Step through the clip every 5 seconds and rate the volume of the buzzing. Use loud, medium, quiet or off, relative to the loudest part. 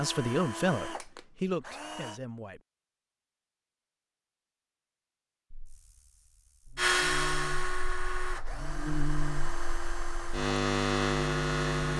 off, quiet, loud.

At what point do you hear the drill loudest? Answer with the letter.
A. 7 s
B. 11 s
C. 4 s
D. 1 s
A.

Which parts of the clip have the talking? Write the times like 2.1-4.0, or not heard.
0.0-2.6.